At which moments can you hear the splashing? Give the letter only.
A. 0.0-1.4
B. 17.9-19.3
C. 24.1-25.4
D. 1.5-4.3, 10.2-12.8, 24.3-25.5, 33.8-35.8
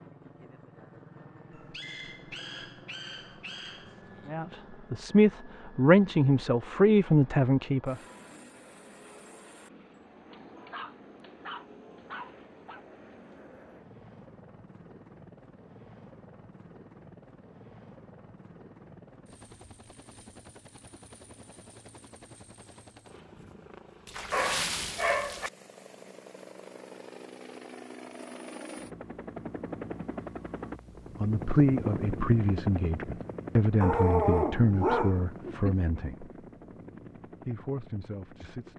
C.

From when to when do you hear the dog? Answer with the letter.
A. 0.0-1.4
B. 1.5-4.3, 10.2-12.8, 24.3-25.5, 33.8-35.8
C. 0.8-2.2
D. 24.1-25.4
B.